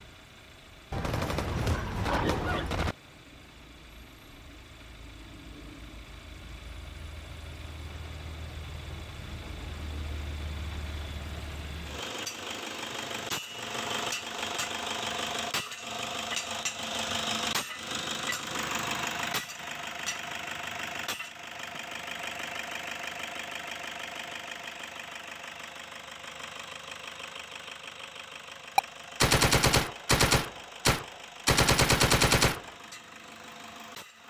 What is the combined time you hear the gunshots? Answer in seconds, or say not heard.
6 s.